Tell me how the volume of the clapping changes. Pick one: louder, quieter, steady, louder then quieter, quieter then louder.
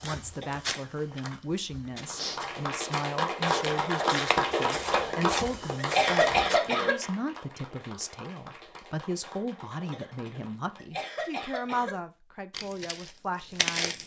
quieter.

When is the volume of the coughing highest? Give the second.
6 s.